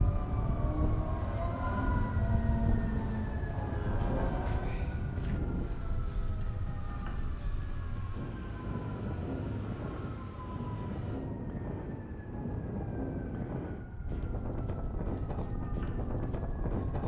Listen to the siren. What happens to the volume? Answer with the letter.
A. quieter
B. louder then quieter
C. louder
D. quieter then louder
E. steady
A.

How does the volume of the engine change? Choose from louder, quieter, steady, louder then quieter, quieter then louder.
quieter.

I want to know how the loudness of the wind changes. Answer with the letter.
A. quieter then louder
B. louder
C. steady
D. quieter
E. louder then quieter
C.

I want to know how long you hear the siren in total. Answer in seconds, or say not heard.
17 s.